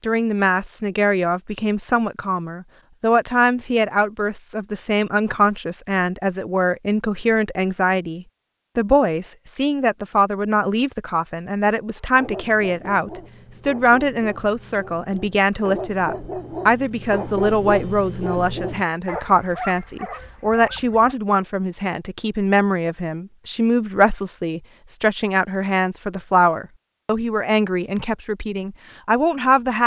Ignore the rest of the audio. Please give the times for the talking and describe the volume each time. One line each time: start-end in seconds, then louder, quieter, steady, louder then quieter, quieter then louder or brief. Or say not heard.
0.0-29.8 steady.